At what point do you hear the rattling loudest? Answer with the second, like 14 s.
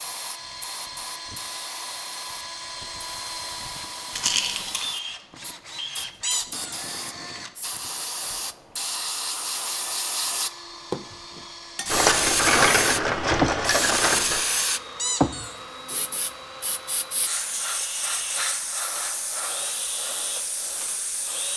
13 s.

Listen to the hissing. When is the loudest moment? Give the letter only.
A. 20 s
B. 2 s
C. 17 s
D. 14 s
D.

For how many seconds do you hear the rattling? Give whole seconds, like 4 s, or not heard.
3 s.